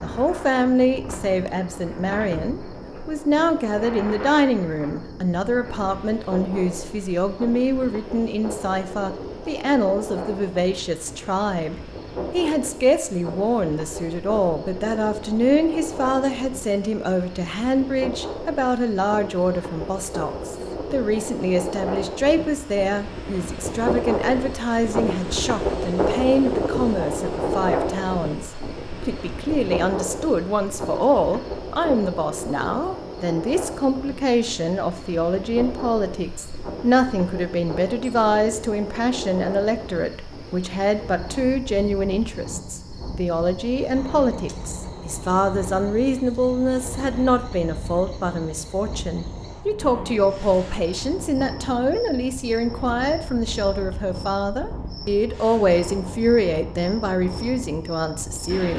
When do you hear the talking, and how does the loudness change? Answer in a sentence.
You can hear the talking from 0.0 to 58.7 s, at a steady volume.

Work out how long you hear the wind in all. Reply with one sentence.
You can hear the wind for 59 seconds altogether.